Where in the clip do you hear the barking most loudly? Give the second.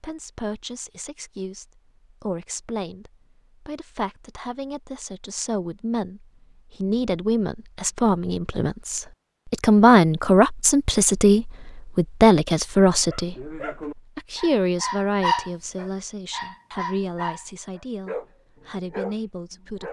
15 s.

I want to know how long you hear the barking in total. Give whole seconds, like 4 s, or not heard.
6 s.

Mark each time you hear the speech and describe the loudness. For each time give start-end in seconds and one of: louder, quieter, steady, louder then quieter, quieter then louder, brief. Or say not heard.
0.0-19.8 louder then quieter.